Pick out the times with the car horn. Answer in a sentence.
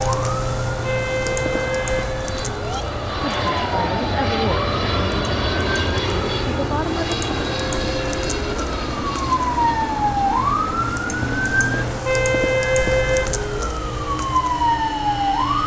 You can hear the car horn from 0.8 to 2.9 s and from 12.1 to 13.3 s.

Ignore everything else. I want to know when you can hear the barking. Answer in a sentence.
You can't hear the barking here.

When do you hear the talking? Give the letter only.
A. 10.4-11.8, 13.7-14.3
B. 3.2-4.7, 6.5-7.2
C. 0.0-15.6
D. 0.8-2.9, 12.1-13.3
B.